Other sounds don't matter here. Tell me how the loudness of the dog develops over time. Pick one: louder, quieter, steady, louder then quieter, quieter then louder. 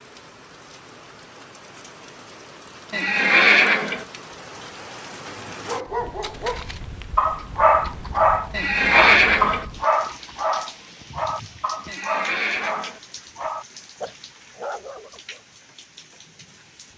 quieter.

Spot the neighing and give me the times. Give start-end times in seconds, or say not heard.
2.9-4.0, 8.5-9.7, 11.8-13.0.